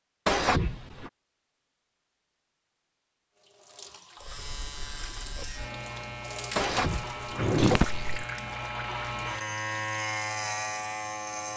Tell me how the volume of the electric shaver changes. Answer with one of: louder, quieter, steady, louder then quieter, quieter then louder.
louder.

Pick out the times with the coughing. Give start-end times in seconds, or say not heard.
7.5-8.2.